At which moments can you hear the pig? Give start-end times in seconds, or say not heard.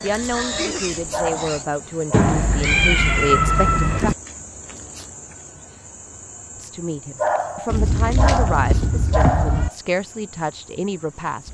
0.0-1.6.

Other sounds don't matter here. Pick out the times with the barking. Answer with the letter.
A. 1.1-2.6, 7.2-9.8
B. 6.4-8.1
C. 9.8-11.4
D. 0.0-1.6
A.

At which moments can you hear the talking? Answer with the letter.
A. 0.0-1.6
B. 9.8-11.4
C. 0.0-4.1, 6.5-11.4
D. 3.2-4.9
C.